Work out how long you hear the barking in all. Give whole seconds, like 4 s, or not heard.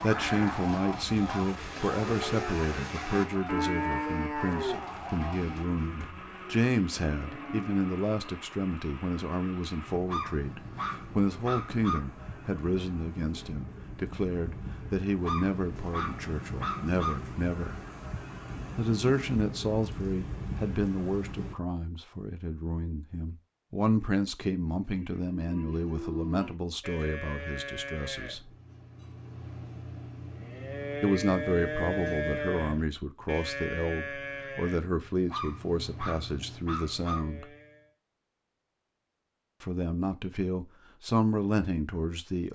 6 s.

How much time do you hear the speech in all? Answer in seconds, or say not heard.
37 s.